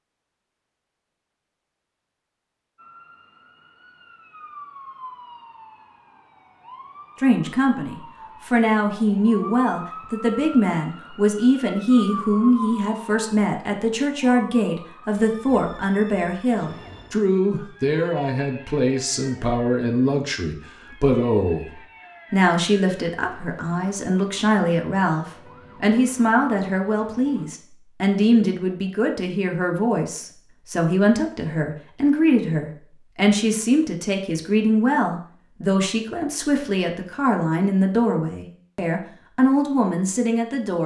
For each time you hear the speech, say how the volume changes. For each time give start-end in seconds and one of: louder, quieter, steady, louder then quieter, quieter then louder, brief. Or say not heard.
7.2-40.8 steady.